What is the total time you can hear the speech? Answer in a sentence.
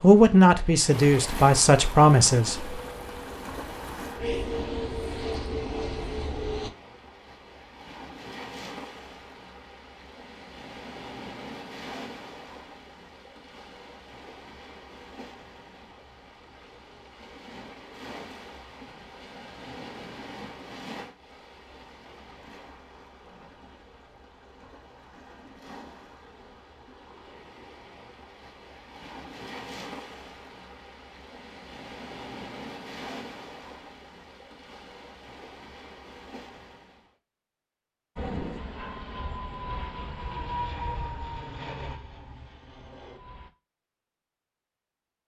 The speech can be heard for 3 seconds in total.